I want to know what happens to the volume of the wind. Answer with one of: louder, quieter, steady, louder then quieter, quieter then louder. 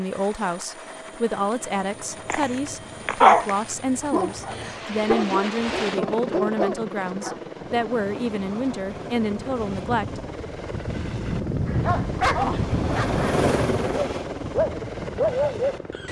louder then quieter.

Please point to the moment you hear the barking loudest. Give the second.
3 s.